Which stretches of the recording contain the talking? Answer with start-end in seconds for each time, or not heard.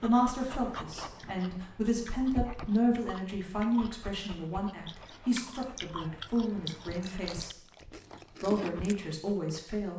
0.0-7.7, 8.4-9.9.